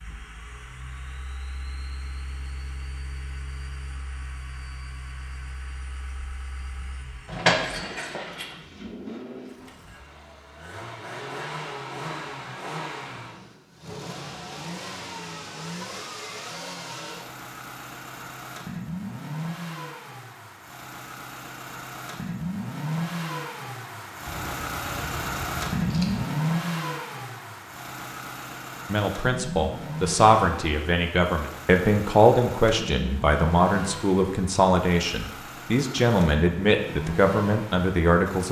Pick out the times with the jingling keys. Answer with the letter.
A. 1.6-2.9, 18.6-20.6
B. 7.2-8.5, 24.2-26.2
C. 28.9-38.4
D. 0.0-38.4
B.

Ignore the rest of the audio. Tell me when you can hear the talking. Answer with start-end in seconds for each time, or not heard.
28.9-38.4.